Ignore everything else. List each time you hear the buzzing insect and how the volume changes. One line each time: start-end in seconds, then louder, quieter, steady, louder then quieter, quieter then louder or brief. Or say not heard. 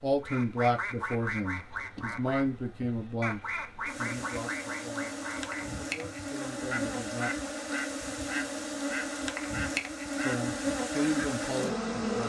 0.0-12.2 louder.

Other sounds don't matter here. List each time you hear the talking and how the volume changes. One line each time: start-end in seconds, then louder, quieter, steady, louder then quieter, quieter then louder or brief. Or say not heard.
0.0-7.3 quieter
10.2-12.2 brief.